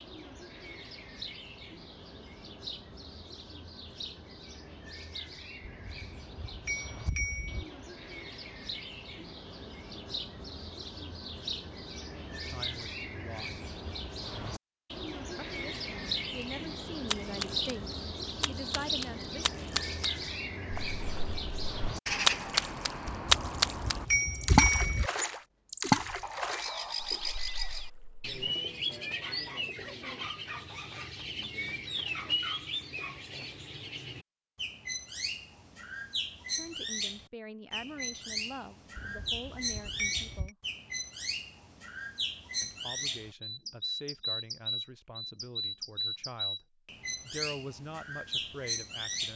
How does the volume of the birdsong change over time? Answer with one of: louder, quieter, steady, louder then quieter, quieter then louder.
louder.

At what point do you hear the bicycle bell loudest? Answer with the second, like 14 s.
25 s.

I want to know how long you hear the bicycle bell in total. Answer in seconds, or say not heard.
6 s.